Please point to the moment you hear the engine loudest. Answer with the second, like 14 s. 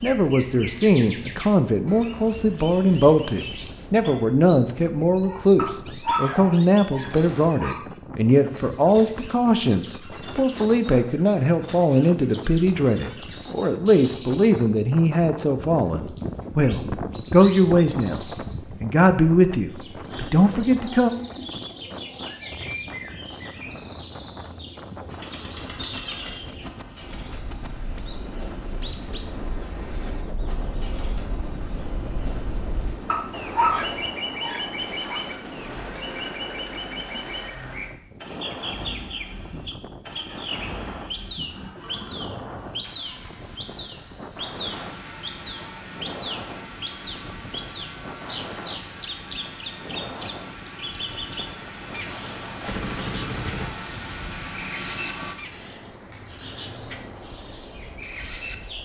55 s.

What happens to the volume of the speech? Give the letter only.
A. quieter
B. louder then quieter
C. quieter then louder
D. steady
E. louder
D.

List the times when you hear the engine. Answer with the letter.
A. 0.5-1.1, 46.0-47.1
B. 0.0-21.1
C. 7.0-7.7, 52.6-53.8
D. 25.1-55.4
D.